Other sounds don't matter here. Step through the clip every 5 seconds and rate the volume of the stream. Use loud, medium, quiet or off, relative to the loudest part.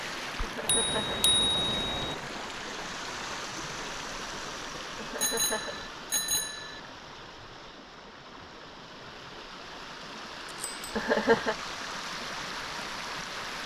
loud, medium, loud.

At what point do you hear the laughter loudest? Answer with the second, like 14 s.
11 s.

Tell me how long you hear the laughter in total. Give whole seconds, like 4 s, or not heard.
2 s.